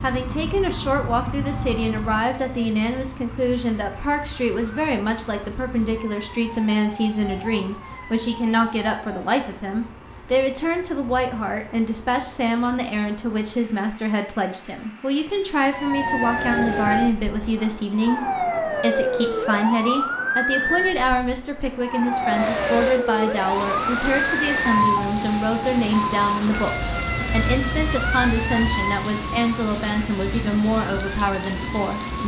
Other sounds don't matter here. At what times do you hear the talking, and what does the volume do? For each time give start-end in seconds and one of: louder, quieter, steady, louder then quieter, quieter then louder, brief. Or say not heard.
0.0-32.2 steady.